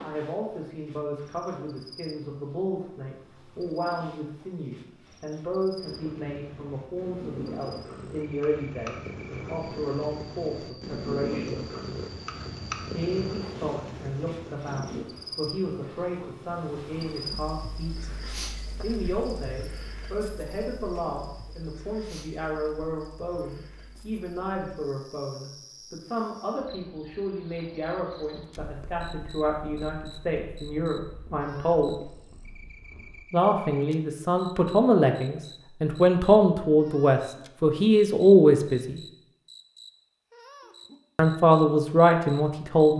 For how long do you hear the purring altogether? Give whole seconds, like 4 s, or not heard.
14 s.